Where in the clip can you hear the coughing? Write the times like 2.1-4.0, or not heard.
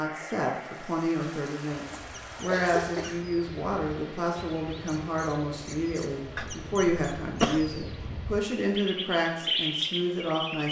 1.9-3.3, 6.3-8.2.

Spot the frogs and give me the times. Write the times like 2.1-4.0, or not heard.
not heard.